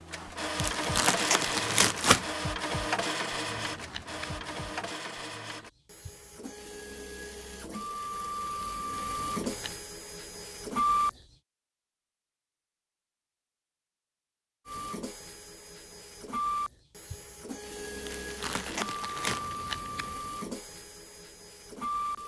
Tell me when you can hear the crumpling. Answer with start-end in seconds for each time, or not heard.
0.6-2.2, 18.1-19.5.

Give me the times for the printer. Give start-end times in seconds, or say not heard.
0.0-11.1, 14.7-22.2.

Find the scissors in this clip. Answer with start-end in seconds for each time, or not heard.
3.6-4.9, 9.3-9.8, 19.2-20.2.